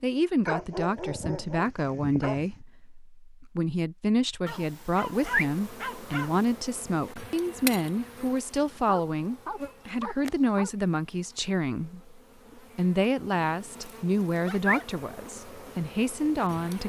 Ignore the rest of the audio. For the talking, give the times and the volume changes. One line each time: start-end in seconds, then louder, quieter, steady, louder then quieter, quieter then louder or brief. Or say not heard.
0.0-16.8 steady.